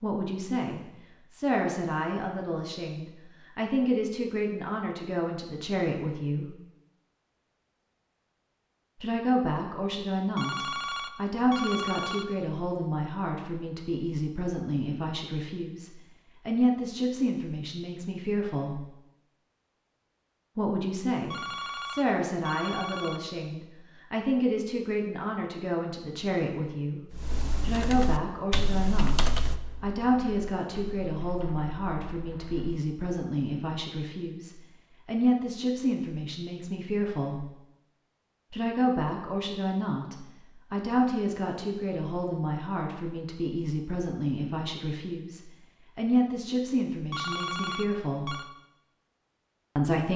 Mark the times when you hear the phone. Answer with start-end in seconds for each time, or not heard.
10.3-12.2, 21.3-23.2, 47.1-48.5.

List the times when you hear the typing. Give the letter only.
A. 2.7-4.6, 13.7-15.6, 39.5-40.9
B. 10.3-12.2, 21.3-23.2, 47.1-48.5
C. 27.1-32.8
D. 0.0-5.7
C.